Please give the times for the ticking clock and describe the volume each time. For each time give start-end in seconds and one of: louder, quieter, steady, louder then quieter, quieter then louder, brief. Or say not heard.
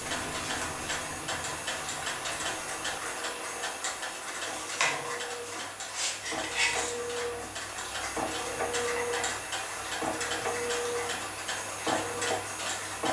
0.0-13.0 steady.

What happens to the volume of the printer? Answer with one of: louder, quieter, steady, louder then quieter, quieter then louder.
louder.